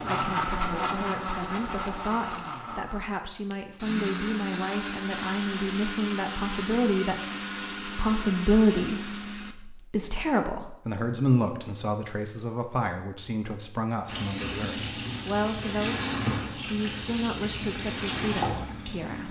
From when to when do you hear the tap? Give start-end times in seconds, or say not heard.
14.1-19.2.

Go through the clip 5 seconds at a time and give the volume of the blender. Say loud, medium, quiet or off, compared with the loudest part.
loud, loud, off, off.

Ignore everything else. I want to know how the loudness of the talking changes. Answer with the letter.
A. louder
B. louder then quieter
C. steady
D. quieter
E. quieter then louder
B.